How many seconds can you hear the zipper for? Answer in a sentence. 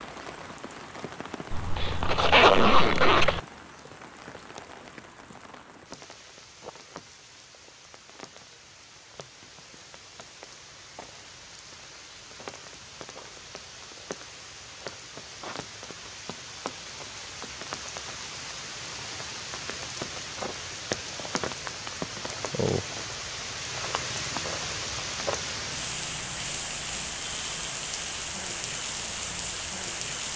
You can hear the zipper for 2 seconds altogether.